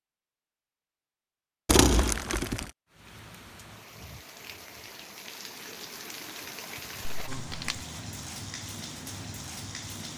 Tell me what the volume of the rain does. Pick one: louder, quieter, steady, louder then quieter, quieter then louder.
louder.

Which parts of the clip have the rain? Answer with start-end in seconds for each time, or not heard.
2.9-10.1.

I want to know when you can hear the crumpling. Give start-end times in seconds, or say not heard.
1.6-2.7, 7.0-7.8.